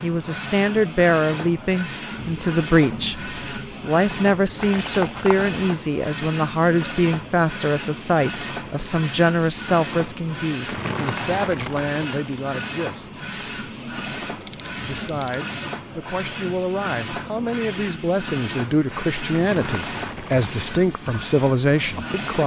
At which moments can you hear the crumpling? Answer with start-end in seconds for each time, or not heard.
4.5-5.5, 10.7-12.4, 19.3-20.8.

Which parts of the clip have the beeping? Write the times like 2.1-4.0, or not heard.
14.4-15.5.